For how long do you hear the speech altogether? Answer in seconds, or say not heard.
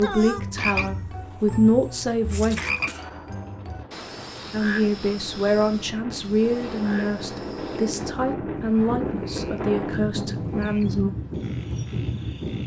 9 s.